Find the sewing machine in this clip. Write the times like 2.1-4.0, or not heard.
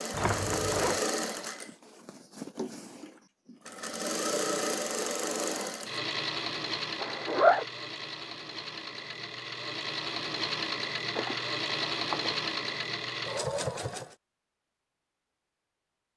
0.0-14.2.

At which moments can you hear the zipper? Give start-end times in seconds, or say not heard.
0.1-1.0, 7.0-7.7, 11.2-12.3.